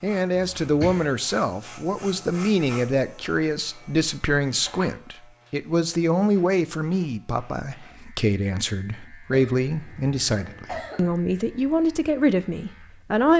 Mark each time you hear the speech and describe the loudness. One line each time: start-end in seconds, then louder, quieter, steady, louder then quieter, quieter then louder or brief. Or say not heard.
0.0-13.3 steady.